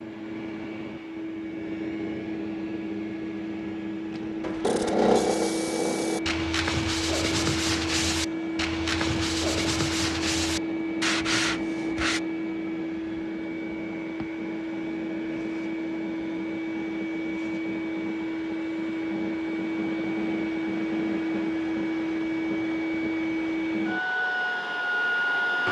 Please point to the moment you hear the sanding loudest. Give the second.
5 s.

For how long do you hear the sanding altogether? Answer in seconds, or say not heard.
8 s.